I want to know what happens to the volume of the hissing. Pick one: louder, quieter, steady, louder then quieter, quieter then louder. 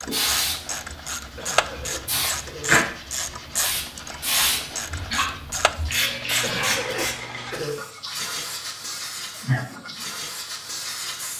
louder then quieter.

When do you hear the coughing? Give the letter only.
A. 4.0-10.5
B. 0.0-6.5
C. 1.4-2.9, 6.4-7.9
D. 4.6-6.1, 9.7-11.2
C.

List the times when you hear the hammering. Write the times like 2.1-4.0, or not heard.
not heard.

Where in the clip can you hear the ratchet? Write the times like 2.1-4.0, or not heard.
0.0-6.5.